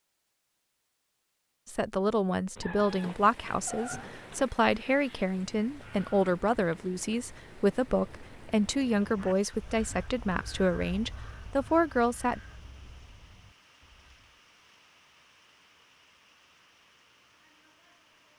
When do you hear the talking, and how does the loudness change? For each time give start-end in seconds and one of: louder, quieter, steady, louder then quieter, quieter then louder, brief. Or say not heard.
1.6-12.4 steady.